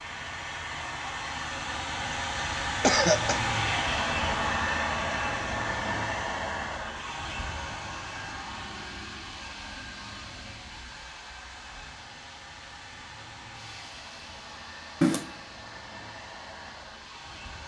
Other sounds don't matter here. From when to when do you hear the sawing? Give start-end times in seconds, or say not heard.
not heard.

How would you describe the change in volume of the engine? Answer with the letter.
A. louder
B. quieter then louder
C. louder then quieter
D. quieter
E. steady
D.